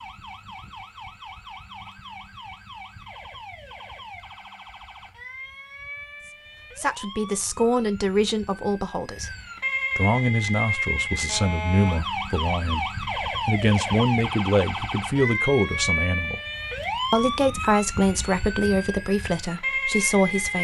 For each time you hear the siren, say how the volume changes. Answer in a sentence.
The siren can be heard from 0.0 to 20.5 s, getting louder.